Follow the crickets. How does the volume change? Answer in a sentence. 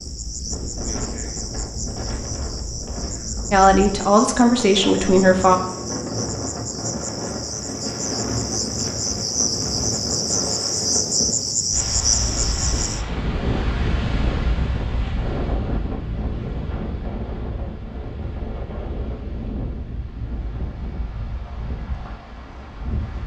The loudness of the crickets goes up.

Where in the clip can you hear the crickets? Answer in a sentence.
The crickets can be heard from 0.0 to 13.1 s.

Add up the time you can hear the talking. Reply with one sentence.
The talking can be heard for 2 seconds in total.